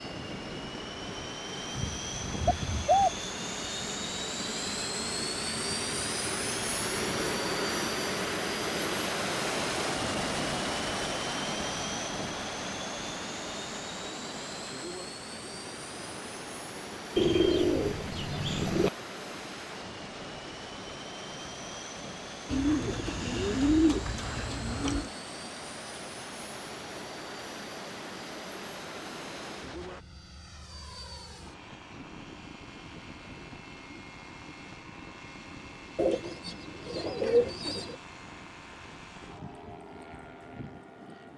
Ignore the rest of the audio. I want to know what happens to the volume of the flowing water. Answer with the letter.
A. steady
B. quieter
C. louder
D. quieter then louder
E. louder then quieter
E.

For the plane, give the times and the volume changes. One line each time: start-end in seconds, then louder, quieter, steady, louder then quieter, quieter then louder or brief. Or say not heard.
0.0-41.3 quieter.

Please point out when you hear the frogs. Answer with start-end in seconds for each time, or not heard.
not heard.